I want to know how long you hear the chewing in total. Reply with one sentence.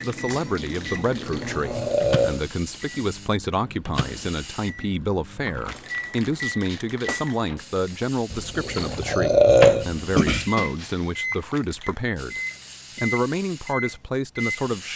You can't hear the chewing here.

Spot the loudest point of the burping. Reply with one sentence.
The volume of the burping peaks at 10 seconds.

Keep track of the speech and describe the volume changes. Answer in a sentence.
The loudness of the speech stays about the same.